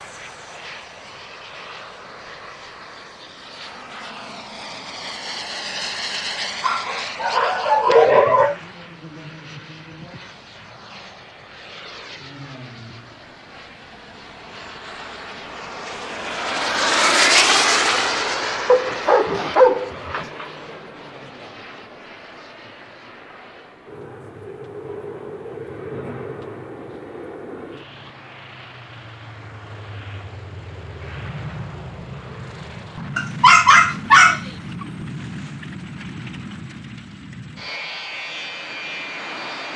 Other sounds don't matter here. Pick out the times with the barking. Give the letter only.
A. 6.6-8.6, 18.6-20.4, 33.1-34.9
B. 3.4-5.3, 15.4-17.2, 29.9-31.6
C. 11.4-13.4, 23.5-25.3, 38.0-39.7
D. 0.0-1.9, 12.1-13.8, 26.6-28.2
A.